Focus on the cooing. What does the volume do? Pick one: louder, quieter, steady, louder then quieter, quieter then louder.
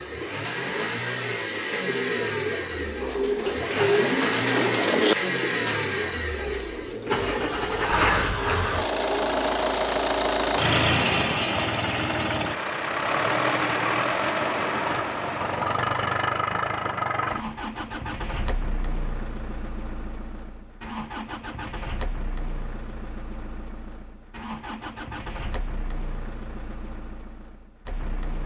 louder then quieter.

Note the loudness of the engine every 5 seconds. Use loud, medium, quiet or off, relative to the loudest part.
medium, loud, loud, medium, quiet, quiet.